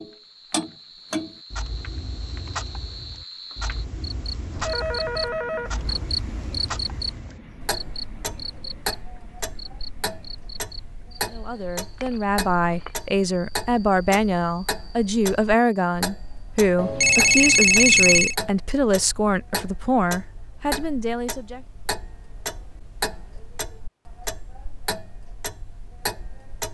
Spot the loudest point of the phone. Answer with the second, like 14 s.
18 s.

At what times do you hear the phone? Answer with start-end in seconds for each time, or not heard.
4.5-6.0, 16.8-18.4.